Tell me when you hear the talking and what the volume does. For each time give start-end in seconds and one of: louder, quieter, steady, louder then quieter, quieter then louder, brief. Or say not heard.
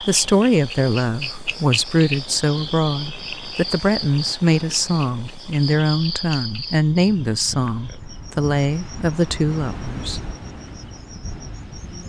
0.0-10.2 steady.